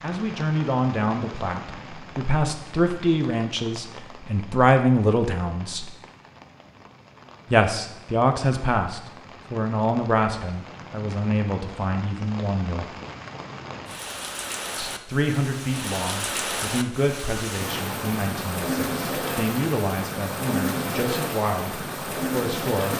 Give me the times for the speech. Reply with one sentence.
The speech can be heard from 0.0 to 5.8 s, from 7.5 to 12.8 s and from 14.8 to 22.9 s.